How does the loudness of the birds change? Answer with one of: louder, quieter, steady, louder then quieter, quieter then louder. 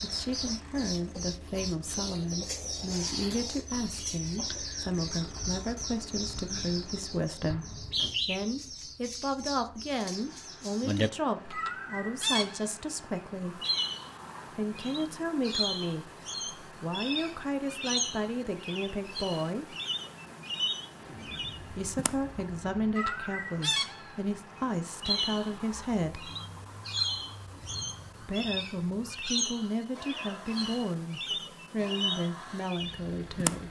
steady.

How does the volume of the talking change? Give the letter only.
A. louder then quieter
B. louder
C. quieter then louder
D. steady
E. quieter
D.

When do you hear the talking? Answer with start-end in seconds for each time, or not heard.
0.0-7.7, 8.2-13.6, 14.6-19.8, 21.6-26.3, 28.2-33.6.